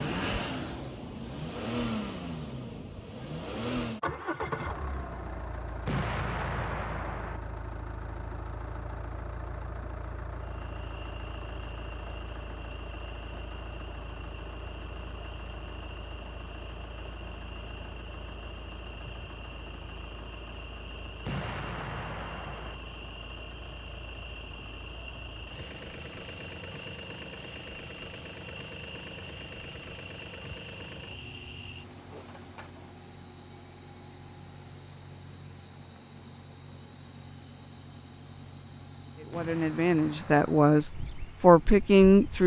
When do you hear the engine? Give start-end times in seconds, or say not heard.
0.0-42.4.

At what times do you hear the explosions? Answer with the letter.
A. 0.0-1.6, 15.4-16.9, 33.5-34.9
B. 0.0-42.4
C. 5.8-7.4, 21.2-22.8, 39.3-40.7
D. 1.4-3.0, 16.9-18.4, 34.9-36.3
C.